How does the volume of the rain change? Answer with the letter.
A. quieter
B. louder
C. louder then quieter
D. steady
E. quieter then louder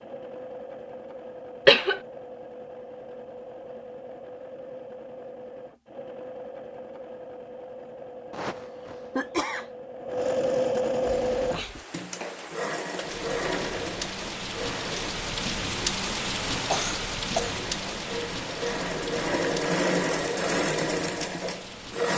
C.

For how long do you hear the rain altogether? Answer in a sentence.
The rain can be heard for 11 seconds in total.